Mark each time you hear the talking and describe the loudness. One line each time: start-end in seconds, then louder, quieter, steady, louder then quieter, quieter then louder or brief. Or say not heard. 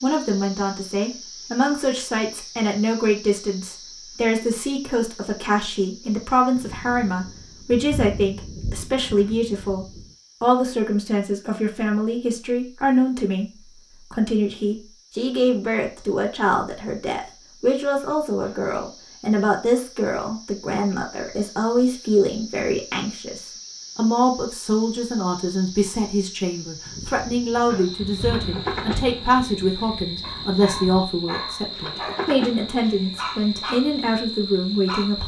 0.0-13.4 steady
14.1-35.2 steady.